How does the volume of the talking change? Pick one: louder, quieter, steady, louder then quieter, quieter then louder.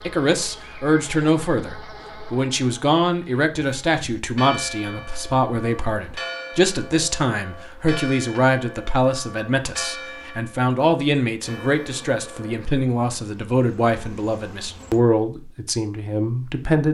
steady.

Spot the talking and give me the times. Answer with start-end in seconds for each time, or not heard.
0.0-16.8.